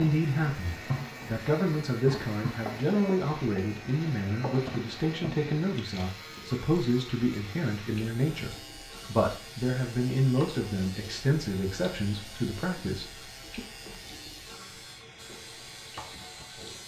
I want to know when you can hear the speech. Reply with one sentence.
You can hear the speech from 0.0 to 13.6 s.